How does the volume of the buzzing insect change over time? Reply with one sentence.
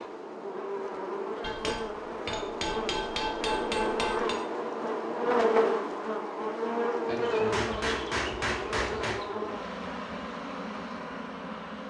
The loudness of the buzzing insect goes up, then down.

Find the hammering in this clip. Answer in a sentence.
The hammering can be heard from 1.4 to 4.4 s and from 7.5 to 9.2 s.